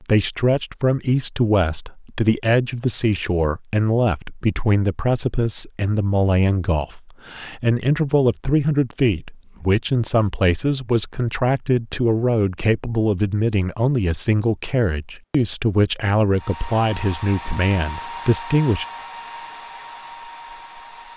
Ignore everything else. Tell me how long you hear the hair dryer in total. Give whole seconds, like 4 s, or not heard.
5 s.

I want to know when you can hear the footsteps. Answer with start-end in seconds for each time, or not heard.
not heard.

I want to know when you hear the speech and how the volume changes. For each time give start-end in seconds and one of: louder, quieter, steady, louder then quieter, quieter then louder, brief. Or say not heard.
0.0-18.9 steady.